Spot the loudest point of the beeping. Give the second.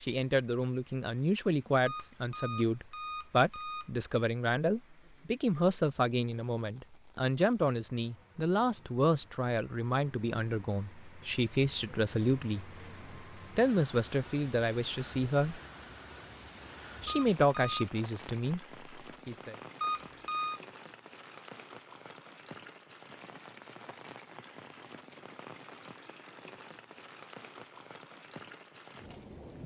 20 s.